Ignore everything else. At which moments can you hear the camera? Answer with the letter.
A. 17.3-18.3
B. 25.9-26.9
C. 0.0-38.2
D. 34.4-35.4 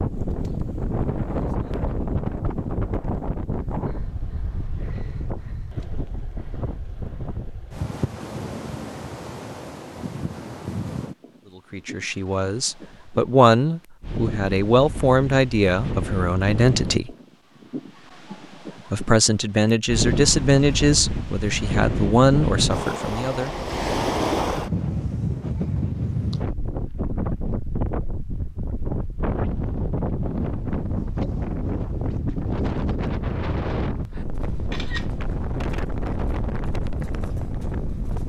D.